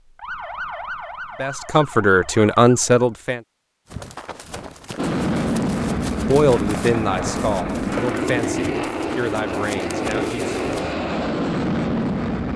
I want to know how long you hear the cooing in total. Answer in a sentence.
You can't hear the cooing here.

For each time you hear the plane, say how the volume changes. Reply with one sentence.
The plane can be heard from 5.0 to 12.5 s, at a steady volume.